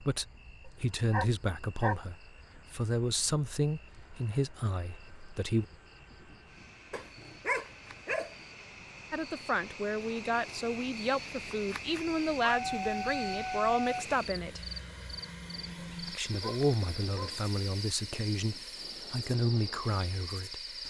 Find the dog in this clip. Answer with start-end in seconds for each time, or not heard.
0.7-2.0, 6.9-8.3, 12.6-14.1, 15.8-17.4.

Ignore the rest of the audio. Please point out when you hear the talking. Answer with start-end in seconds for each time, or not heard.
0.0-5.7, 9.1-14.7, 16.1-20.8.